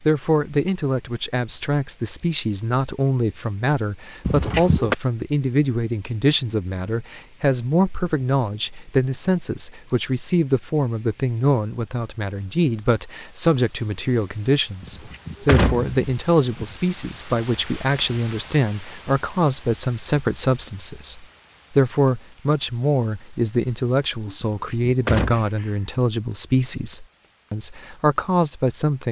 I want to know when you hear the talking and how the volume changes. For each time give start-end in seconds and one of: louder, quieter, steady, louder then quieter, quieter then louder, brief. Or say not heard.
0.0-29.0 steady.